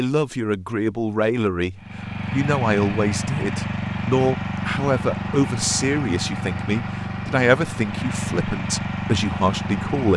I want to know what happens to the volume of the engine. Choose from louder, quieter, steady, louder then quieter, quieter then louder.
steady.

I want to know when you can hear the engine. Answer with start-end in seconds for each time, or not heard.
1.8-10.1.